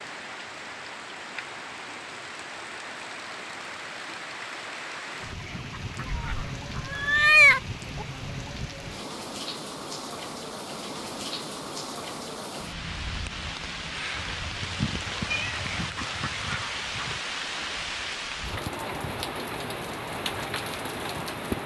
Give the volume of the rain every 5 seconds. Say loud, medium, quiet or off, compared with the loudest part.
medium, medium, loud, loud, loud.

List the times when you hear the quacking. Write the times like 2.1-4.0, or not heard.
5.2-7.1, 15.4-17.2.